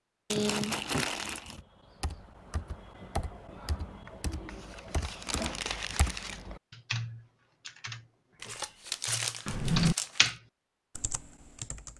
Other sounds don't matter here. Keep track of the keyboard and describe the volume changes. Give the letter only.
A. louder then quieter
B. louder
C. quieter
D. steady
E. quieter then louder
B.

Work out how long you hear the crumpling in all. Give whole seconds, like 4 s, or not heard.
5 s.